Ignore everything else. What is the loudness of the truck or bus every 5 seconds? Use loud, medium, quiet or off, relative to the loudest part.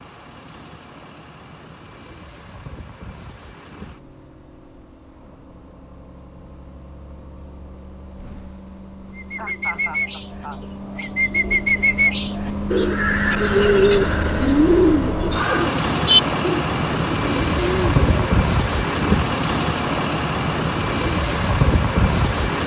quiet, quiet, medium, loud, loud.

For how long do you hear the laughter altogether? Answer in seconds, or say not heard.
2 s.